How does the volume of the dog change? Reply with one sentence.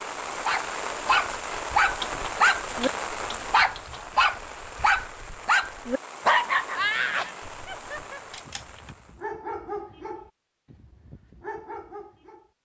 The loudness of the dog goes down.